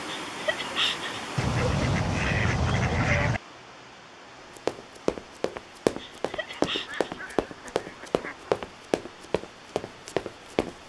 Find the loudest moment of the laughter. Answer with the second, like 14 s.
1 s.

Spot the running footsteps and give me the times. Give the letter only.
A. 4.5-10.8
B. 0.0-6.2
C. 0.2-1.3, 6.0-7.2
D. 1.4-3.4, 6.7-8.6
A.